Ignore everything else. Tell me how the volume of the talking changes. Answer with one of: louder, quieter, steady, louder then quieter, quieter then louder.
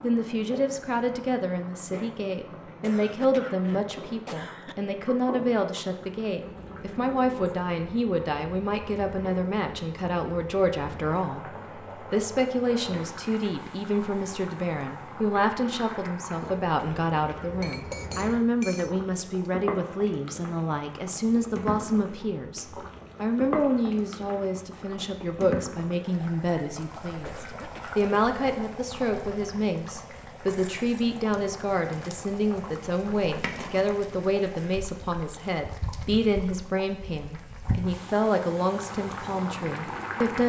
steady.